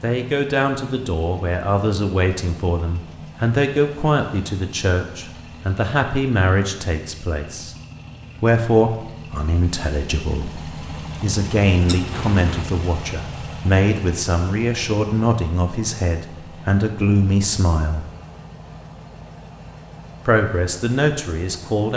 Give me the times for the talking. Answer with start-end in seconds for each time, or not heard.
0.0-7.8, 8.4-18.1, 20.2-21.9.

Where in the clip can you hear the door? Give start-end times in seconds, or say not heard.
not heard.